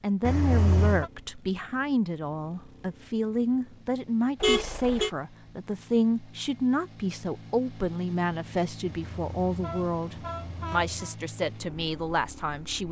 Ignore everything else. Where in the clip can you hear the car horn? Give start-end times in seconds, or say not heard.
0.2-1.1, 4.4-5.1, 8.8-11.2.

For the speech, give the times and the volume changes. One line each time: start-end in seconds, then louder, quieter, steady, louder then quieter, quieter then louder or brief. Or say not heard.
0.0-12.8 steady.